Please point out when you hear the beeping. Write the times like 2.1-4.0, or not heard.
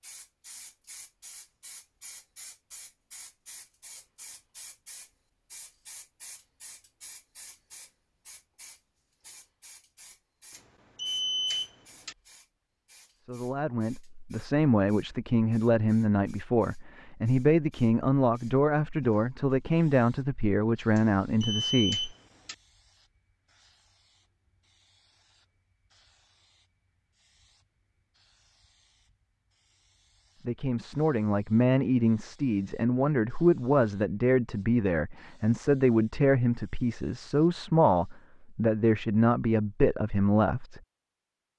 10.5-12.2, 20.9-22.6.